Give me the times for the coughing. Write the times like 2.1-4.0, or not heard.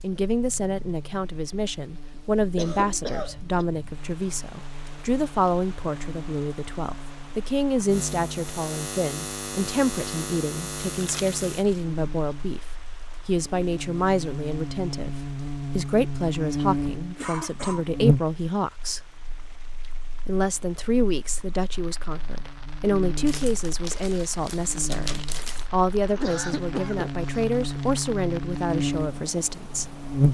2.1-3.6, 17.1-17.9, 25.6-27.4.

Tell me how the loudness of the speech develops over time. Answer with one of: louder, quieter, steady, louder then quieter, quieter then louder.
steady.